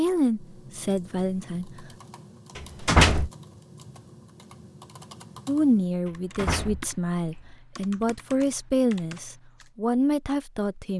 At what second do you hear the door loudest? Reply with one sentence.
The volume of the door peaks at 3 seconds.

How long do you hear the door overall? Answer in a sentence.
You can hear the door for 2 seconds altogether.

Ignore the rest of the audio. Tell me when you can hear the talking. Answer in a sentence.
You can hear the talking from 0.0 to 1.9 s and from 5.5 to 10.9 s.